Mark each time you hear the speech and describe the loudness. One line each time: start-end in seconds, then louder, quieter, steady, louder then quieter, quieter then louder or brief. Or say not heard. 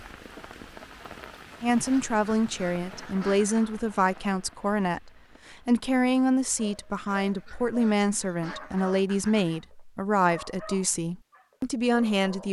1.6-12.4 steady.